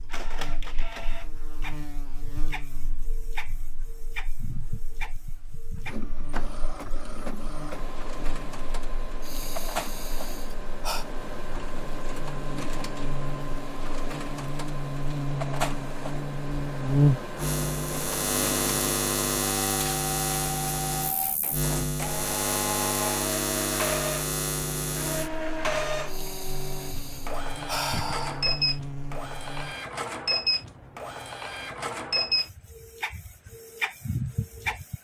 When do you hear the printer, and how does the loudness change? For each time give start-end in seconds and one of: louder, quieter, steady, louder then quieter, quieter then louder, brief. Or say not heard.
0.0-35.0 louder.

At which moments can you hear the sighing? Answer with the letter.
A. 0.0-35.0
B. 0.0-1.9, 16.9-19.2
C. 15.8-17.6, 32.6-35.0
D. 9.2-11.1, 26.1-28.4
D.